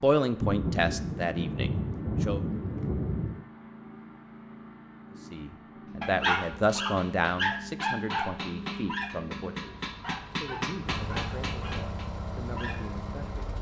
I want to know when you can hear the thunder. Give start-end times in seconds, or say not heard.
0.4-3.5.